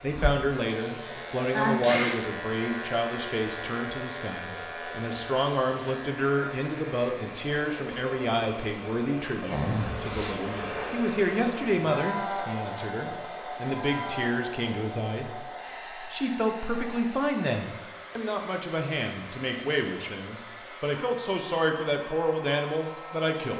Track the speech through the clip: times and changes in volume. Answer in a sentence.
The speech can be heard from 0.0 to 23.5 s, at a steady volume.